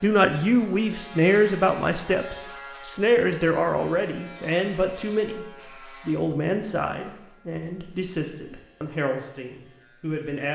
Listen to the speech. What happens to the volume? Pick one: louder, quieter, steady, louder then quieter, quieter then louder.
quieter.